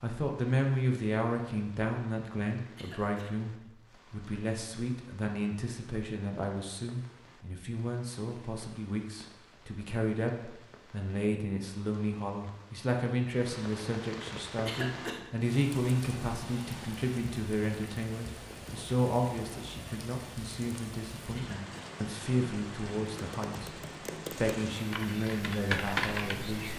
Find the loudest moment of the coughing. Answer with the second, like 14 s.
15 s.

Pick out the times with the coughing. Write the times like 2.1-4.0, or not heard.
2.8-3.3, 14.7-15.2, 21.4-21.9.